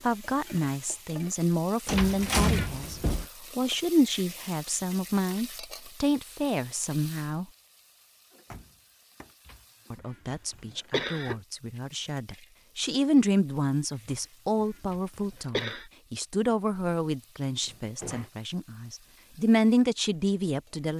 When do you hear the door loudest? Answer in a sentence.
The volume of the door peaks at 2 seconds.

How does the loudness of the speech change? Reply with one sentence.
The loudness of the speech stays about the same.